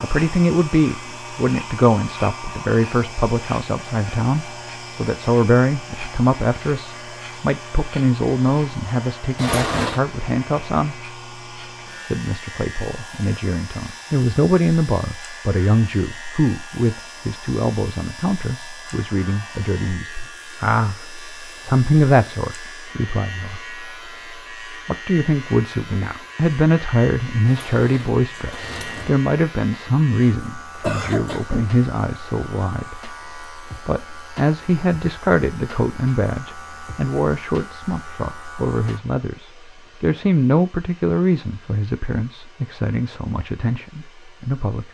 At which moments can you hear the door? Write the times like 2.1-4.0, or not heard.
9.3-10.1, 27.4-29.1.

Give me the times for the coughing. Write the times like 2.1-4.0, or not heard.
30.8-31.6.